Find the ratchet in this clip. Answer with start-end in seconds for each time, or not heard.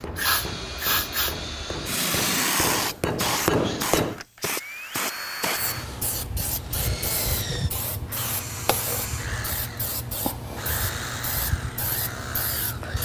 not heard.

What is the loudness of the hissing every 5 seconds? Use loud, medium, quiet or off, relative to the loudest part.
loud, medium, medium.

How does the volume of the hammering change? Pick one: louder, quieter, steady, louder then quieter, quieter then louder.
louder.